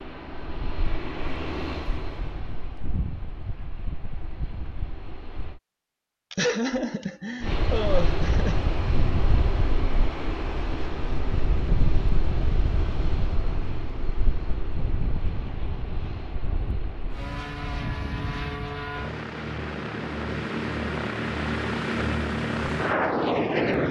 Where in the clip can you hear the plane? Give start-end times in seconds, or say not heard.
0.0-5.6, 7.4-23.8.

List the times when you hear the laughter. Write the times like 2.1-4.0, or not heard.
6.3-8.7.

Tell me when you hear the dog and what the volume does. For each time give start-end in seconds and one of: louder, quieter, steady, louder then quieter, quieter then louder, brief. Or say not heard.
not heard.